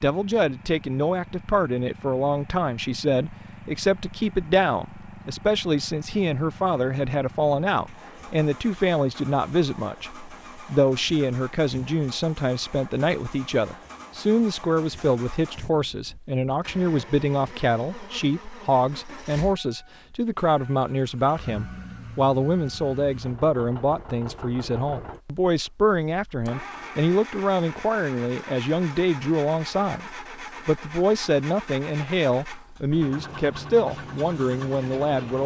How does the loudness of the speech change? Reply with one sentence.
The volume of the speech stays about the same.